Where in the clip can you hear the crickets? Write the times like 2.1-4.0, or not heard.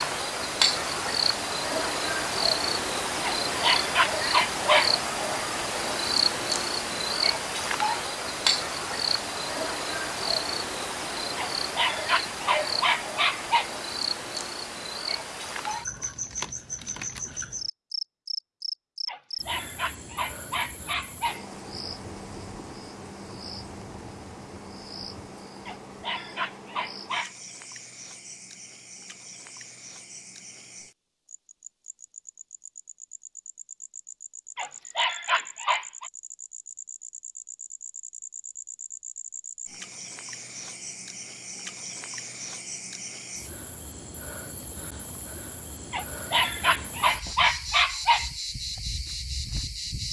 0.0-50.0.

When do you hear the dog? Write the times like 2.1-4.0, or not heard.
3.2-5.0, 11.3-13.7, 19.1-21.4, 25.6-27.3, 34.5-36.1, 45.9-48.3.